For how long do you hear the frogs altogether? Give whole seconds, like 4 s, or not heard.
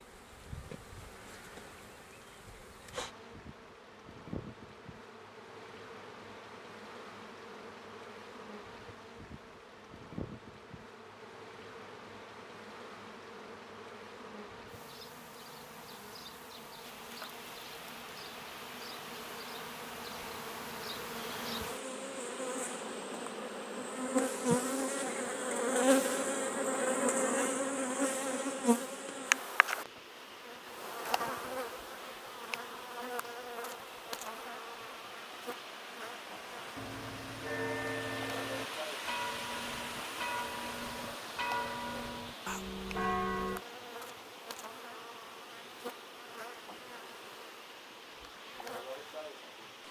not heard.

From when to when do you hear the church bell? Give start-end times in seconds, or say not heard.
36.8-43.6.